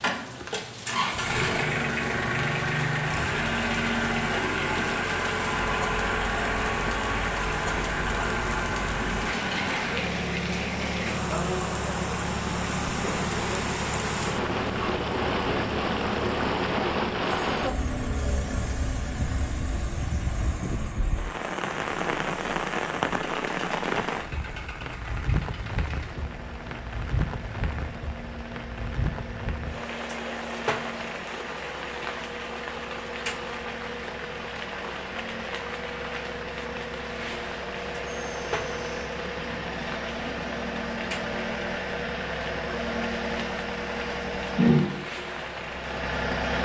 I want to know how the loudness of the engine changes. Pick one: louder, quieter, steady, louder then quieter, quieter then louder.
quieter then louder.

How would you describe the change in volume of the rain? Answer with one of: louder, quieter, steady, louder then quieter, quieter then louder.
louder then quieter.